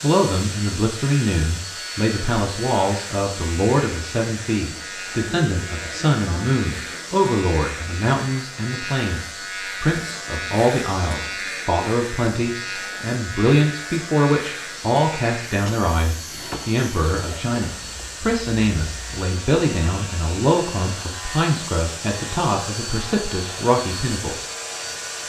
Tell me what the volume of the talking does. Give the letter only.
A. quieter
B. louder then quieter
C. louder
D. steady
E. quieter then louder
D.